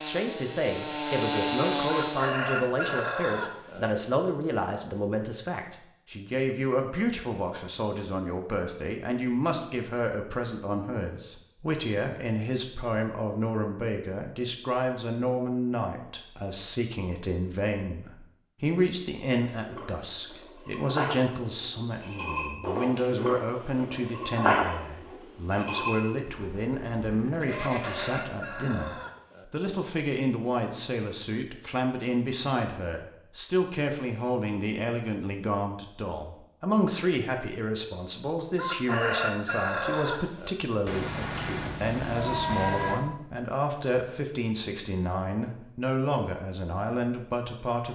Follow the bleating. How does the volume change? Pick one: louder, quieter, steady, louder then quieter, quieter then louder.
louder then quieter.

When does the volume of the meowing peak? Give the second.
43 s.